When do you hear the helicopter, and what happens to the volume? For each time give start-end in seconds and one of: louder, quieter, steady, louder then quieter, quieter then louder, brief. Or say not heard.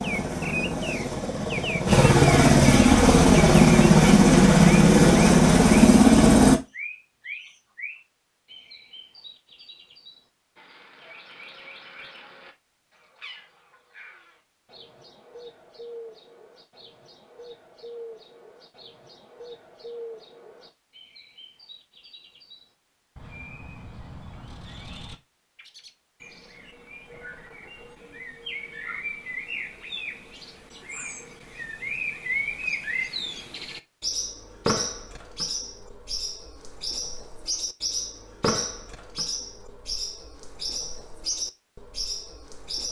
0.0-6.6 louder.